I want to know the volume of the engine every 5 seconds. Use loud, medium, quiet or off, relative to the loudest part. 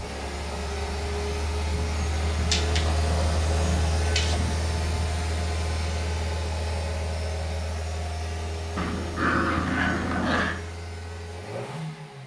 loud, loud, medium.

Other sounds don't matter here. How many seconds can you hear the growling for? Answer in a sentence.
You can hear the growling for 4 seconds altogether.